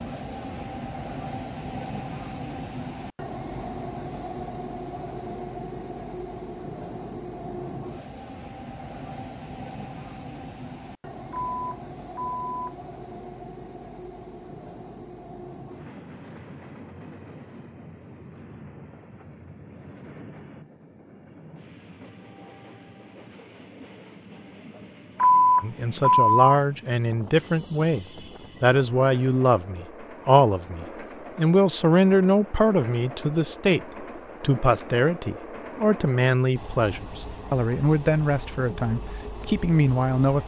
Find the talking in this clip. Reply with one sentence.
The talking can be heard from 25.6 to 40.4 s.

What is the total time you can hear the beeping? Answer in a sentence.
The beeping can be heard for 3 seconds in total.